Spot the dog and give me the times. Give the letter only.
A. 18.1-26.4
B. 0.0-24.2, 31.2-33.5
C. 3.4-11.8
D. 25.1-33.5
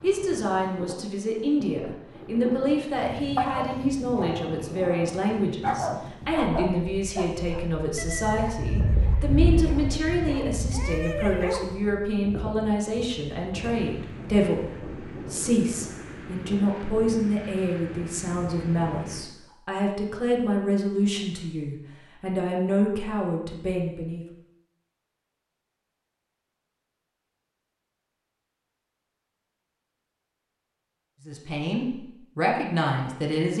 C.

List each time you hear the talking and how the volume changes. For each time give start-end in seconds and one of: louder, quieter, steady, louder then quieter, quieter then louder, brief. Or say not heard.
0.0-24.2 steady
31.2-33.5 brief.